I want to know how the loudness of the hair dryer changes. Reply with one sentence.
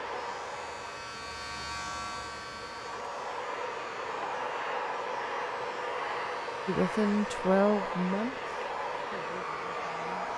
The volume of the hair dryer goes up.